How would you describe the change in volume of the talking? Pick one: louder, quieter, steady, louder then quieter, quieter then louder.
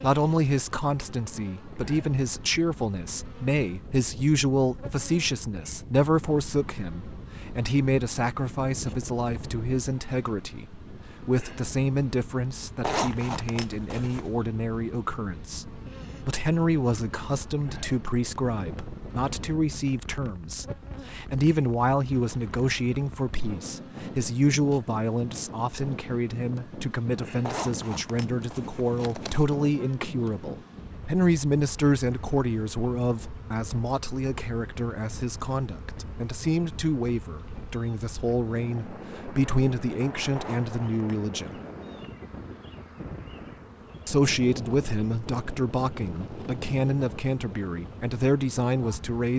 steady.